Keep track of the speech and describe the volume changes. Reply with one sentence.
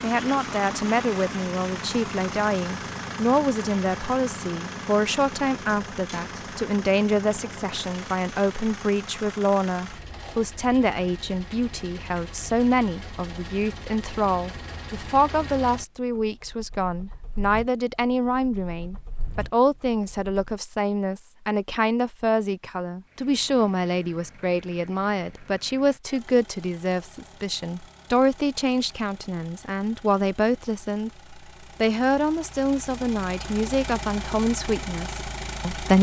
The loudness of the speech stays about the same.